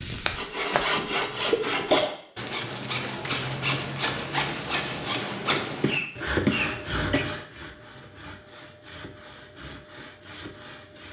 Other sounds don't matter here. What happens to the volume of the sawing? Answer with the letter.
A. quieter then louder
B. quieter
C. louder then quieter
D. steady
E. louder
B.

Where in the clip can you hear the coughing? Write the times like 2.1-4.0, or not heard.
0.9-2.1, 5.8-7.2.